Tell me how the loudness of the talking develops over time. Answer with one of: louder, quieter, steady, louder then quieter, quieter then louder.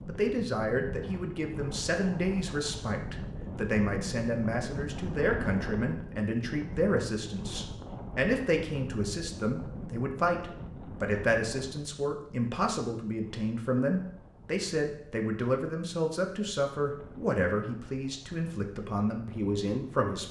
steady.